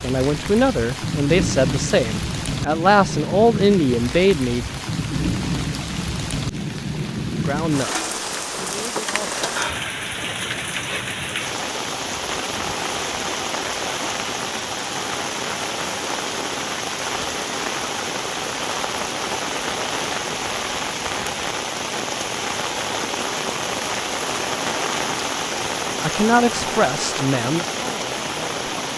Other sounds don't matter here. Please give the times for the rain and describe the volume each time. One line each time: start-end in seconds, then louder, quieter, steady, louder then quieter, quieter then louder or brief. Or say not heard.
0.0-28.9 steady.